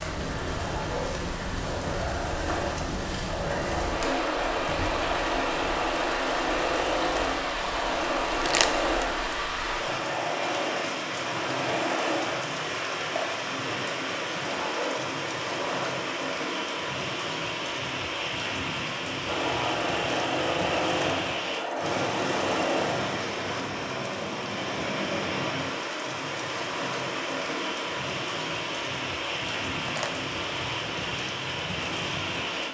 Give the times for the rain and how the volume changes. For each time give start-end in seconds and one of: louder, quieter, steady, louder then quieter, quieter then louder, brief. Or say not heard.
0.0-32.6 steady.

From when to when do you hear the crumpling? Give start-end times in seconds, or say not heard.
8.3-9.1, 29.8-30.2.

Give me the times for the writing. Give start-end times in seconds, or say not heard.
not heard.